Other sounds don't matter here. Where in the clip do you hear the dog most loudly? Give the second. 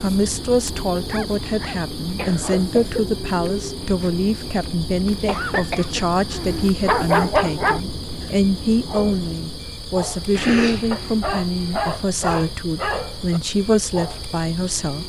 7 s.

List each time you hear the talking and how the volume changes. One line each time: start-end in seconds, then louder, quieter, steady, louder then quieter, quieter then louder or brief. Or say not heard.
0.0-15.0 steady.